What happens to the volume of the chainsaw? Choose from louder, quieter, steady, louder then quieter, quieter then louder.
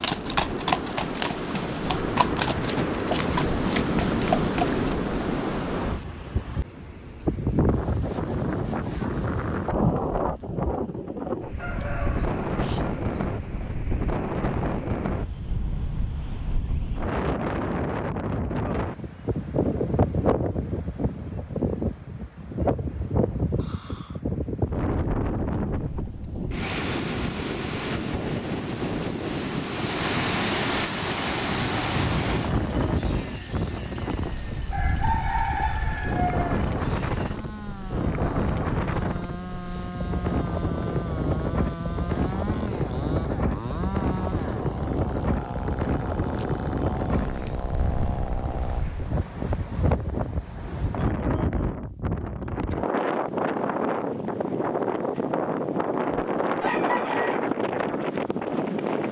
louder.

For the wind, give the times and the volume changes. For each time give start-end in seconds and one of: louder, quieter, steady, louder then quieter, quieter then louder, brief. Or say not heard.
0.0-59.0 steady.